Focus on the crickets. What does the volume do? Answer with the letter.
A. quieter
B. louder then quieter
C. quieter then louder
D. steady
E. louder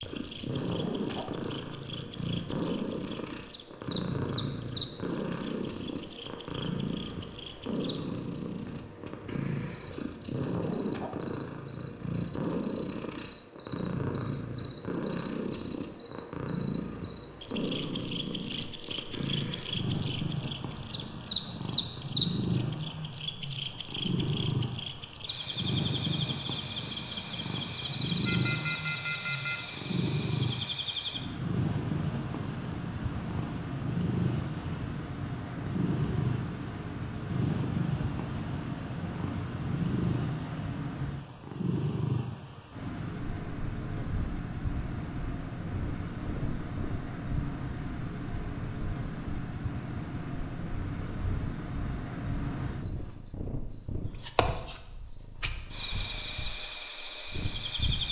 E.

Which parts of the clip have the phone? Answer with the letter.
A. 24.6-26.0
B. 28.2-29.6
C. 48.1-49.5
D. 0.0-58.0
B.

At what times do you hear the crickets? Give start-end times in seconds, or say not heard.
0.0-58.0.